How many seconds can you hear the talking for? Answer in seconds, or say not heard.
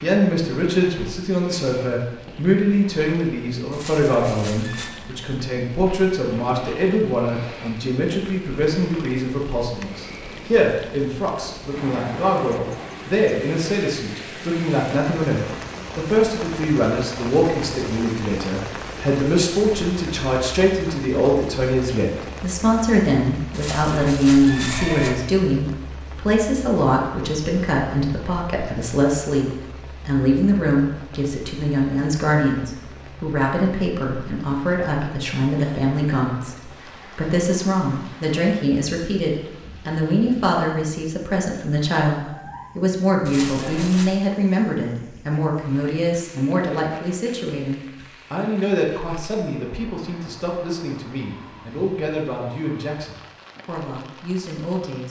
55 s.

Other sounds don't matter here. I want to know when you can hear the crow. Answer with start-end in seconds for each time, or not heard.
not heard.